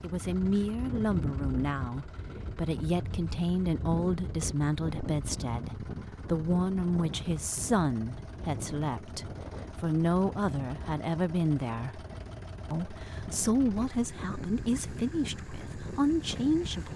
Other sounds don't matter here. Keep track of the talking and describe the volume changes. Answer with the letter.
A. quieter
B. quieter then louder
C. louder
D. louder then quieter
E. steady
E.